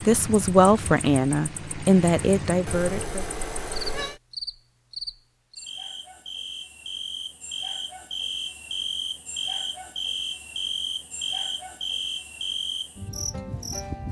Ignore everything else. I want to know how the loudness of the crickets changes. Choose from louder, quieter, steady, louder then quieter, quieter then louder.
louder.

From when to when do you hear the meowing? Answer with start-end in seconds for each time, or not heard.
2.6-4.2.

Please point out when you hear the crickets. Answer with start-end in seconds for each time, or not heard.
0.0-14.0.